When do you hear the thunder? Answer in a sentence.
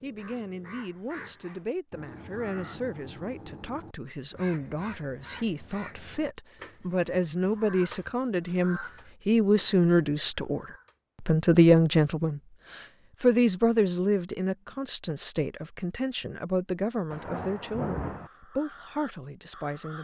The thunder can be heard from 17.1 to 18.3 s.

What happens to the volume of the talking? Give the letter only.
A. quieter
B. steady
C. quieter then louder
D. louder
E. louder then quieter
E.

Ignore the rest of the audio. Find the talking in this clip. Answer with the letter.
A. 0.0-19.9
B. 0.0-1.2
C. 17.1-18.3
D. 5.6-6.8
A.